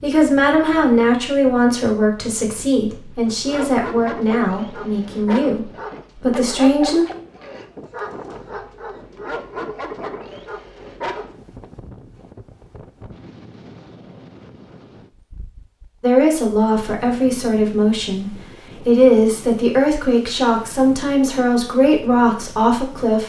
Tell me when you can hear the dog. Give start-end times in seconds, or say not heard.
3.2-11.3.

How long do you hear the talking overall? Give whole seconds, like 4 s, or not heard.
14 s.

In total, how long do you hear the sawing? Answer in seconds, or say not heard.
not heard.